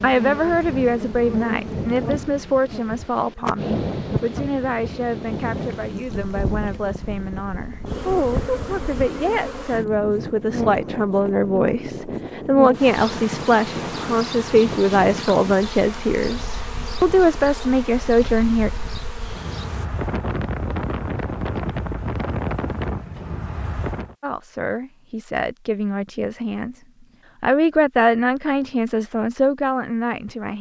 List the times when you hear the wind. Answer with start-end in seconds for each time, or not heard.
0.0-24.1.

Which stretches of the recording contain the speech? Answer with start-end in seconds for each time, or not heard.
0.0-18.7, 24.2-30.5.